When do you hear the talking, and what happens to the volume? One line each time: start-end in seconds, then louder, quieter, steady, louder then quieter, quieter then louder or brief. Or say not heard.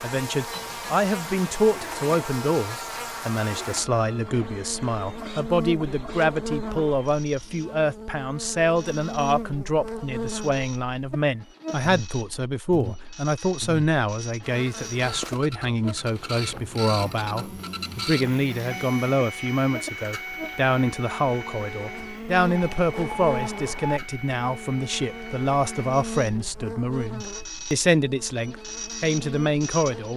0.0-30.1 steady.